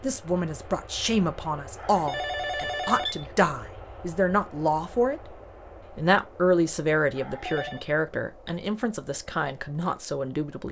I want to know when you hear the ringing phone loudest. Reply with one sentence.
The volume of the ringing phone peaks at 3 seconds.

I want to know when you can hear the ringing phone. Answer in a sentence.
You can hear the ringing phone from 1.8 to 3.3 s and from 7.2 to 7.8 s.